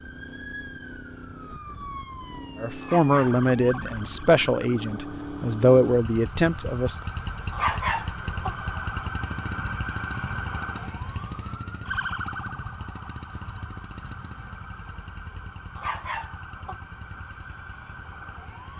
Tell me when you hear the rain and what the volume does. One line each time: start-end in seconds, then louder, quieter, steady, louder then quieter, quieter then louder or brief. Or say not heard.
not heard.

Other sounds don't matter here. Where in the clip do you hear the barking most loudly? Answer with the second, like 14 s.
8 s.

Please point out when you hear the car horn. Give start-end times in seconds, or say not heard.
not heard.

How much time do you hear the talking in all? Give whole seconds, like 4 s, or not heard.
4 s.